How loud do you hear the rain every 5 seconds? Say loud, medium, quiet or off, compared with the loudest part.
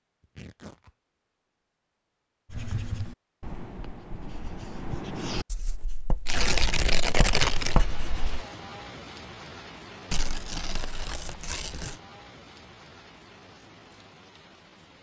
off, loud, medium.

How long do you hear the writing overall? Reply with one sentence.
You can hear the writing for 6 seconds altogether.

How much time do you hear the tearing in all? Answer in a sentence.
The tearing can be heard for 4 seconds in total.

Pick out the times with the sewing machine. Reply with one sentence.
The sewing machine can't be heard in this clip.